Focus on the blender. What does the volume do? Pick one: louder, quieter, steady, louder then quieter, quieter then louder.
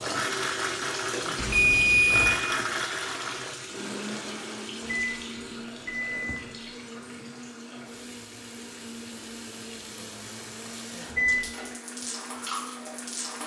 quieter.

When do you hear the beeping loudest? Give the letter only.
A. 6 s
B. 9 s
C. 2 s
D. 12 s
C.